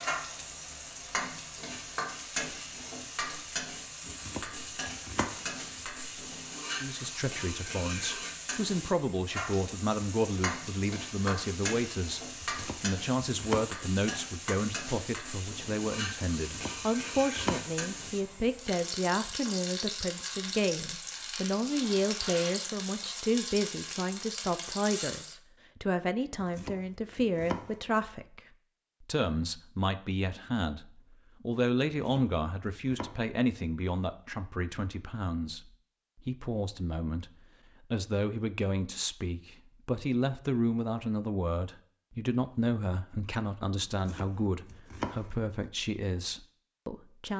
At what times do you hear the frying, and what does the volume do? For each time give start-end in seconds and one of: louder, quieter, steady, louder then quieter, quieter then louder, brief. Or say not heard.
0.0-25.4 steady.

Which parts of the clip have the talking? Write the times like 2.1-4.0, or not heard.
6.8-12.2, 12.8-28.4, 29.0-47.3.